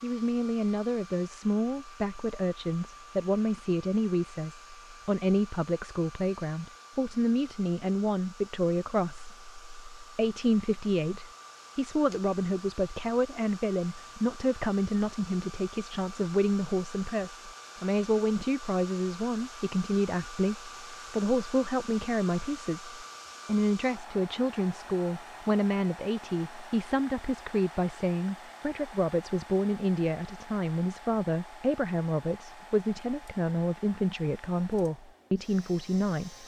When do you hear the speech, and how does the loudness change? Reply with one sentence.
The speech can be heard from 0.0 to 36.4 s, at a steady volume.